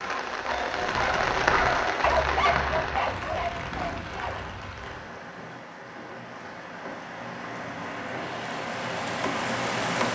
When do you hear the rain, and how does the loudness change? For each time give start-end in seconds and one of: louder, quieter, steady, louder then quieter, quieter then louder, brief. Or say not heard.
0.0-10.1 quieter then louder.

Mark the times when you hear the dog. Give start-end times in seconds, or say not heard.
0.0-4.5.